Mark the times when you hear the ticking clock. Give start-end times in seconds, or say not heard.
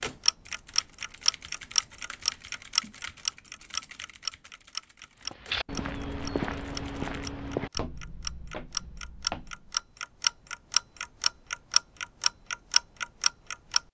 0.0-13.8.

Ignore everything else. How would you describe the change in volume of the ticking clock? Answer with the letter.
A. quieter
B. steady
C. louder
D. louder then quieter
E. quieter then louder
E.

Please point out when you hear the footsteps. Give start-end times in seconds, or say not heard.
5.2-9.8.